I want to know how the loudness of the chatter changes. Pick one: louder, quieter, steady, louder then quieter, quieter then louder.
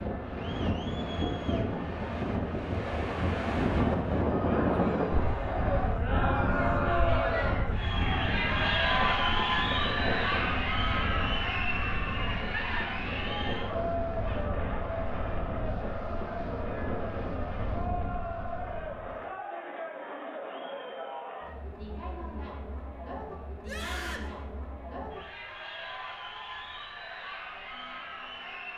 louder then quieter.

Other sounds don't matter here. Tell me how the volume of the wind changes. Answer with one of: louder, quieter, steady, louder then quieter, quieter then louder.
quieter.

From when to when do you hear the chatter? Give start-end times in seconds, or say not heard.
0.0-28.7.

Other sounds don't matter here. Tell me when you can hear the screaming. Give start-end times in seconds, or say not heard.
23.6-24.3.